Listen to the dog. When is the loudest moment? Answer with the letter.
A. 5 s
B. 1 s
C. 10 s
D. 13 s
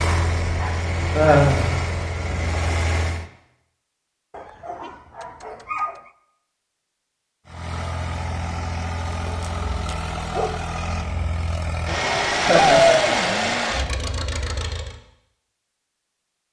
D.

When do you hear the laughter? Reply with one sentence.
You can hear the laughter from 1.1 to 1.7 s and from 12.4 to 13.5 s.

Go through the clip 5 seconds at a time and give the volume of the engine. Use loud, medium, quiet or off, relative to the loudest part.
loud, medium, loud, off.